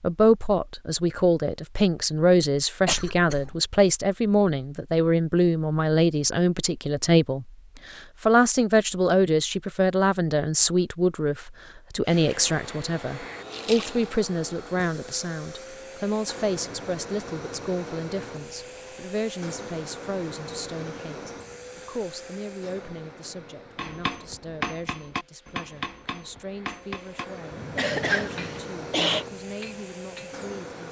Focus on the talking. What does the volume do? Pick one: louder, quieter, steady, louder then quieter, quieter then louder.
quieter.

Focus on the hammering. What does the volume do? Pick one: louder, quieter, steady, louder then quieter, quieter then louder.
quieter.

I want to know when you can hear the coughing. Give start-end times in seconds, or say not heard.
2.9-3.5, 27.8-29.2.